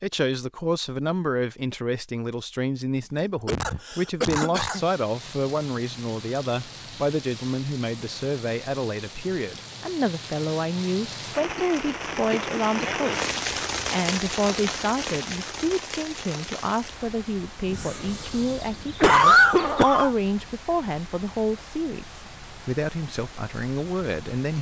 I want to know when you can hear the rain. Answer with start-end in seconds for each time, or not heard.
4.6-24.5.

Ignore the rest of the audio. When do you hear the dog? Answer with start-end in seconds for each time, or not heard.
not heard.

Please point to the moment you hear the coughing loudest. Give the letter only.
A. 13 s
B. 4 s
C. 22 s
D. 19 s
D.